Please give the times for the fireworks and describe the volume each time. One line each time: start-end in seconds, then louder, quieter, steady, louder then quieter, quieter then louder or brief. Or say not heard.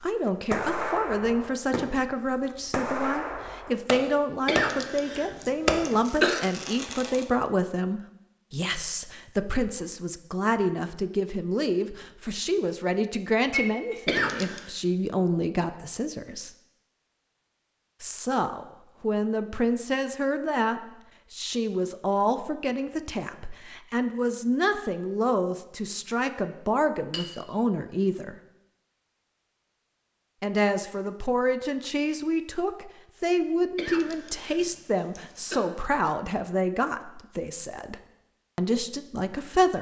0.0-4.7 quieter then louder
5.7-7.2 brief.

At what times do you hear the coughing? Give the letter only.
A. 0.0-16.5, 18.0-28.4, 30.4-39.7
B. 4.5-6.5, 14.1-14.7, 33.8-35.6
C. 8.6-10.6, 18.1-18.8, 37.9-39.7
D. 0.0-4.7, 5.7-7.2
B.